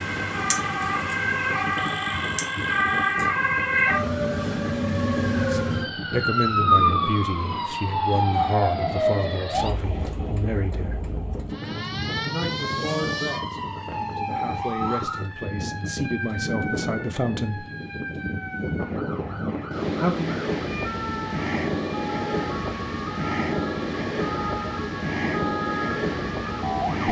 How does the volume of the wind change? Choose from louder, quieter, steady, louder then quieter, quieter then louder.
louder.